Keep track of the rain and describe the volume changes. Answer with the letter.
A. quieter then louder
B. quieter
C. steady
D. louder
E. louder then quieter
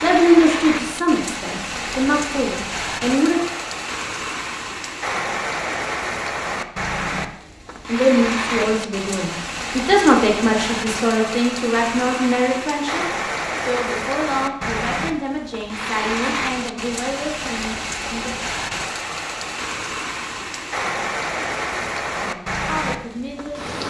C.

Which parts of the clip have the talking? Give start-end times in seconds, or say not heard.
0.0-3.4, 7.8-18.3, 22.2-23.8.